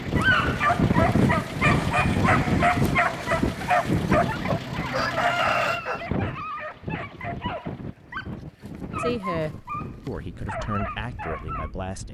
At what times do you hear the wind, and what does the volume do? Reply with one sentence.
You can hear the wind from 0.0 to 12.0 s, getting quieter.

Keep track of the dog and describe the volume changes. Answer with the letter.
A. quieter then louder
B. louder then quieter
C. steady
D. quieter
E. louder
D.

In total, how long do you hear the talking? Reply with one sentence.
You can hear the talking for 3 seconds altogether.